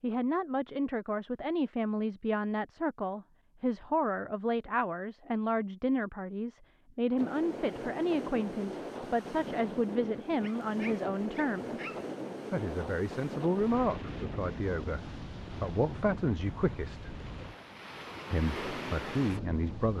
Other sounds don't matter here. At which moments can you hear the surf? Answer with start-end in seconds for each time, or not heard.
7.2-19.9.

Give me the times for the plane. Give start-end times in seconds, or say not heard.
not heard.